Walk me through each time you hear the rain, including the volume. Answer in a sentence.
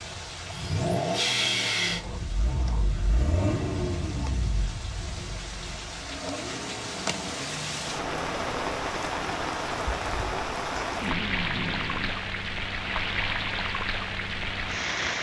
The rain can be heard from 0.0 to 15.1 s, getting louder.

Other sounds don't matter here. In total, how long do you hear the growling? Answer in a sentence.
The growling can be heard for 3 seconds in total.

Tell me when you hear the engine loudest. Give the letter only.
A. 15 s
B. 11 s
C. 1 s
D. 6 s
C.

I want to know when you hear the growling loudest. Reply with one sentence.
The volume of the growling peaks at 11 seconds.